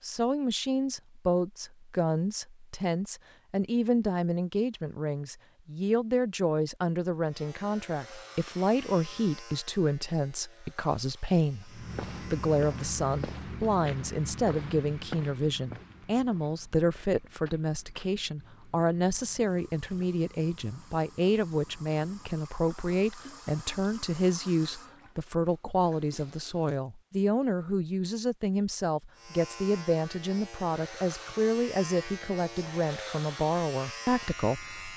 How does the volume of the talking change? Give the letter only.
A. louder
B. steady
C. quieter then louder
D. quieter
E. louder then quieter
B.